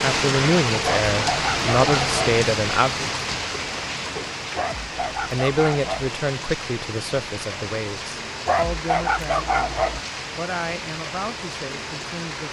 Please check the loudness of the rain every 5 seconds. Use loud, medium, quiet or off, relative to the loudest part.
loud, medium, medium.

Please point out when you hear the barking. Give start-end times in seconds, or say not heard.
0.8-2.1, 4.5-6.1, 8.4-10.0.